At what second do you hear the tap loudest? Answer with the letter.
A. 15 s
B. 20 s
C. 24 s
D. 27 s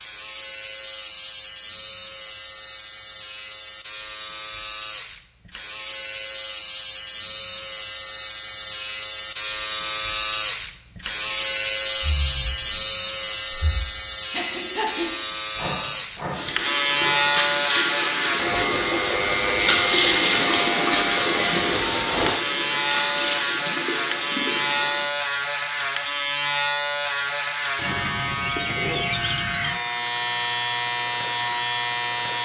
B.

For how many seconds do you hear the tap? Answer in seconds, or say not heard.
9 s.